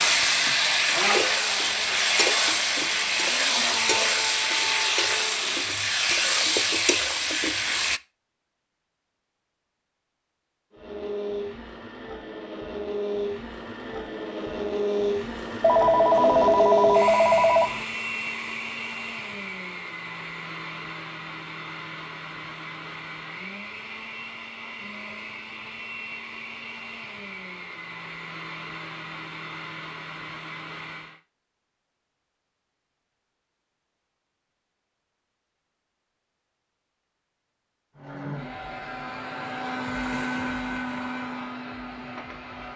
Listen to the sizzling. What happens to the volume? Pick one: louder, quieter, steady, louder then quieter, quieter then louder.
steady.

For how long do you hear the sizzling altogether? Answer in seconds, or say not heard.
8 s.